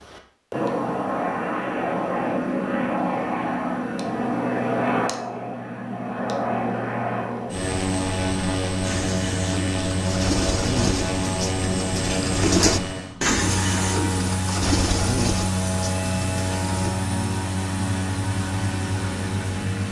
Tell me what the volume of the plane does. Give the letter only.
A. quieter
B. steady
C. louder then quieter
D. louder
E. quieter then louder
B.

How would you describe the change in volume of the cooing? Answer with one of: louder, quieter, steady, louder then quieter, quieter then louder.
louder then quieter.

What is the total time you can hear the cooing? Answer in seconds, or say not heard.
8 s.